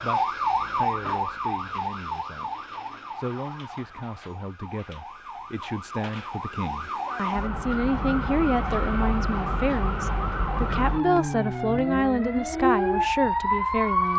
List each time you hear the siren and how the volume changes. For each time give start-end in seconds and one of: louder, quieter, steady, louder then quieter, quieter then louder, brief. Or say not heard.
0.0-14.1 quieter then louder.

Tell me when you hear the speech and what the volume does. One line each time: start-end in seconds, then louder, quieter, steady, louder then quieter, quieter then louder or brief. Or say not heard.
0.0-2.5 brief
3.1-14.1 louder.